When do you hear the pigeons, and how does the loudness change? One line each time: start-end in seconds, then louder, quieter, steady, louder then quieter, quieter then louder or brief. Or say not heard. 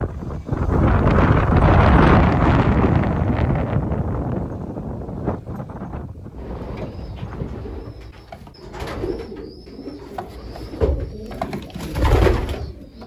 6.3-13.0 louder.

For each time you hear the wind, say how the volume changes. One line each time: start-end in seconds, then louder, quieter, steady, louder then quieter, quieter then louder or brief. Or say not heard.
0.0-7.8 quieter.